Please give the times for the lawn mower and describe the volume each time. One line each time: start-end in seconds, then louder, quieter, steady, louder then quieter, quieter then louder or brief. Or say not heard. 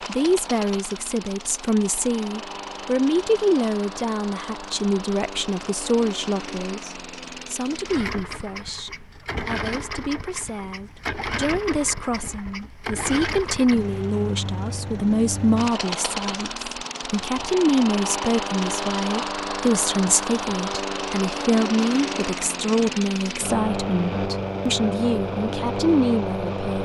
0.0-26.7 louder.